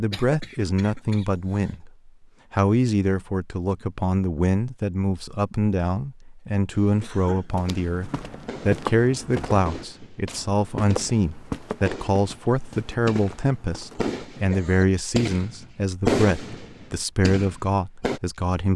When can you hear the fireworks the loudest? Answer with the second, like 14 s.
16 s.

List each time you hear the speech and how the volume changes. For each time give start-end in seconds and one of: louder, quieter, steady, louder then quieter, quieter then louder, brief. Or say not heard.
0.0-18.7 steady.